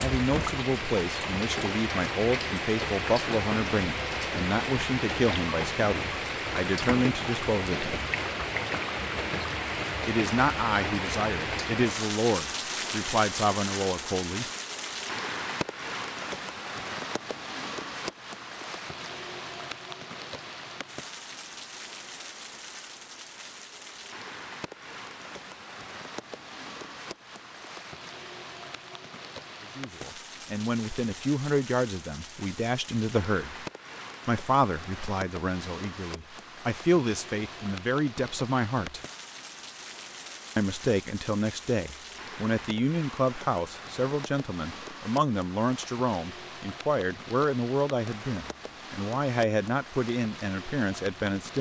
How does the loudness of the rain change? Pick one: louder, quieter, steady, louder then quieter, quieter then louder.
quieter.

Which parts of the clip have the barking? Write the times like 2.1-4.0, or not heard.
not heard.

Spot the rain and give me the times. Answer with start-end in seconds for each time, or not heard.
0.0-51.5.